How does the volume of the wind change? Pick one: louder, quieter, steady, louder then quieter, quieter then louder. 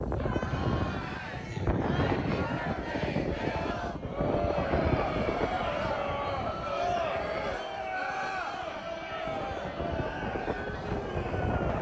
quieter then louder.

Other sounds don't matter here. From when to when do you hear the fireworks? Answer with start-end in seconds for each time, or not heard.
not heard.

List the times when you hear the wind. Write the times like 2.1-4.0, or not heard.
0.0-11.7.